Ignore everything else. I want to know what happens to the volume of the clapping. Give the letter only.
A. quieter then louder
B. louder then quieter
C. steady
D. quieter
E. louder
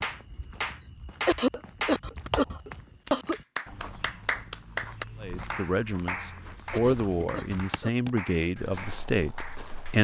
D.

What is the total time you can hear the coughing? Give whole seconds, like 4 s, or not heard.
4 s.